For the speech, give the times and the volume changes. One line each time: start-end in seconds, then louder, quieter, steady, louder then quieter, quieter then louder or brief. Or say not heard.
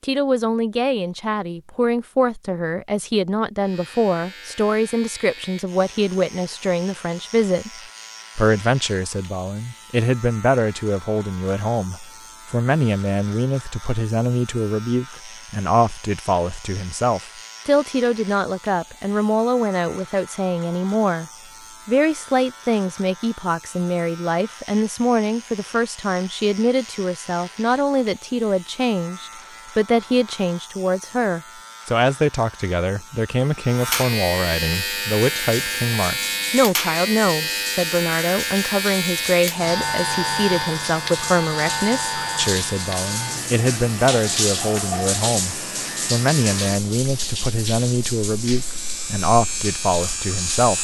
0.0-7.7 steady
8.3-50.7 steady.